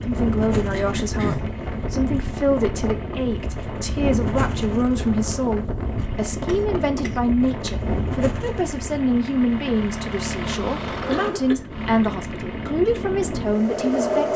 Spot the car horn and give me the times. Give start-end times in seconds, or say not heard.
not heard.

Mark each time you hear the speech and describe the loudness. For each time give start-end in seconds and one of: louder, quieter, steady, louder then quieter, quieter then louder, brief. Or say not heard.
0.0-14.3 steady.